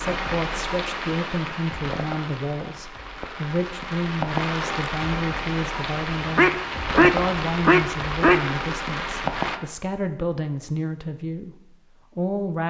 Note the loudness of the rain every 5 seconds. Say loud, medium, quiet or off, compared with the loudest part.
loud, loud, off.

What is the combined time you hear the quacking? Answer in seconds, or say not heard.
2 s.